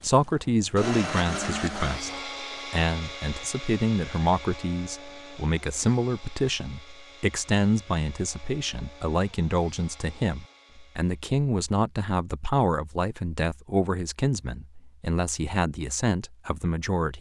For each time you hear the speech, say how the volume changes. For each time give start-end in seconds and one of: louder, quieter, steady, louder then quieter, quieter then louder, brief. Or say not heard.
0.0-17.1 steady.